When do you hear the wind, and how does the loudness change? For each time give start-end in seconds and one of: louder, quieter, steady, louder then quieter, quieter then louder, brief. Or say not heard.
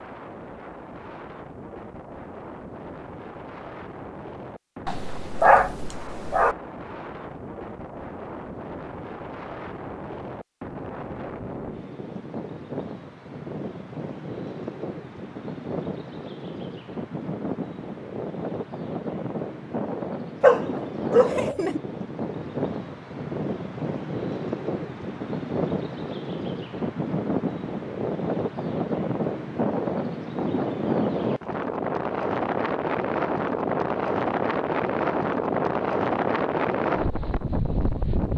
0.0-38.3 louder.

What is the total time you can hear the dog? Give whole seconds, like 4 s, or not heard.
3 s.